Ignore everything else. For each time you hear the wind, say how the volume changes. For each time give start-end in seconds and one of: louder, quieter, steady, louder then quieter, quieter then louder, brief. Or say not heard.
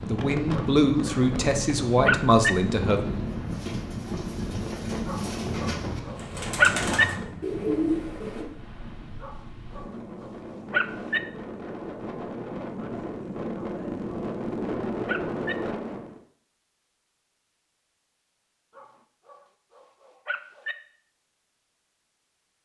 0.0-16.2 quieter then louder.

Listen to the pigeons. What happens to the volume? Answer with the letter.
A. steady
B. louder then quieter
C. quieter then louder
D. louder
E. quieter
D.